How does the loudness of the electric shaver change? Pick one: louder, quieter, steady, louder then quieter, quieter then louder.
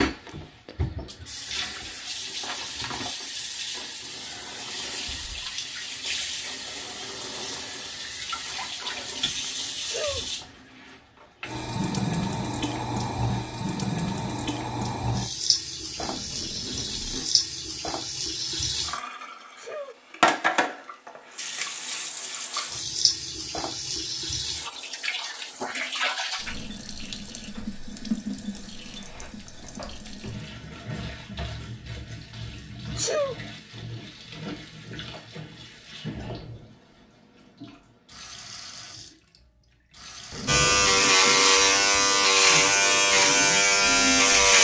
steady.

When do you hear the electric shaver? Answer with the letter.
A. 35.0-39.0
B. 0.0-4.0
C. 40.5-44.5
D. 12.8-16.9
C.